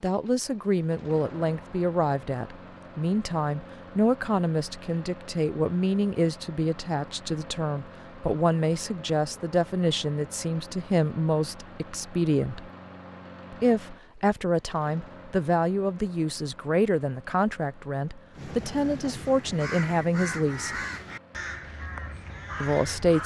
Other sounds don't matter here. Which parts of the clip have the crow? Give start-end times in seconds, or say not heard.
18.3-23.2.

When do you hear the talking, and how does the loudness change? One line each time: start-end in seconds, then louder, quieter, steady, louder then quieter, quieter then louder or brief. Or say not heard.
0.0-12.7 steady
13.5-20.8 steady
22.6-23.2 brief.